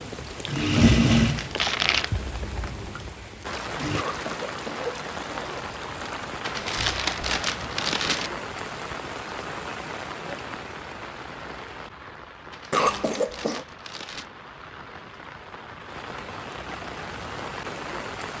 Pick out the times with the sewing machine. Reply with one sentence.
The sewing machine can be heard from 0.0 to 4.0 s.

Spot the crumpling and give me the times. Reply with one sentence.
The crumpling can be heard from 1.4 to 2.1 s, from 6.4 to 8.3 s and from 12.5 to 14.3 s.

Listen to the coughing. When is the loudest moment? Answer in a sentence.
The volume of the coughing peaks at 13 seconds.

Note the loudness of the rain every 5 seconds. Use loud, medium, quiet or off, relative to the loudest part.
loud, loud, medium, loud.